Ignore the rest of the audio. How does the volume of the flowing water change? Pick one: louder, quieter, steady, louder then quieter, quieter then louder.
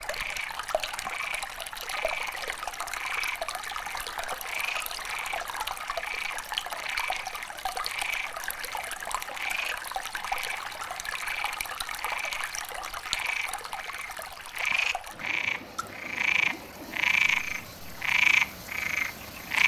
quieter.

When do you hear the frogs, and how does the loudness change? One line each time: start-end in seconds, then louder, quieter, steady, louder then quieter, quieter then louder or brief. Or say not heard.
0.0-19.6 louder.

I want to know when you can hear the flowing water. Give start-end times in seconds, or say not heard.
0.0-19.6.